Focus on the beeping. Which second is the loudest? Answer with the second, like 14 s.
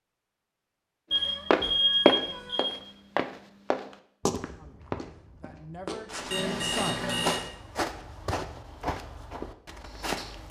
2 s.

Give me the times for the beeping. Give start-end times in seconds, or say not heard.
1.1-2.7, 6.3-7.4.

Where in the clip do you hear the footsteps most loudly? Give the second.
2 s.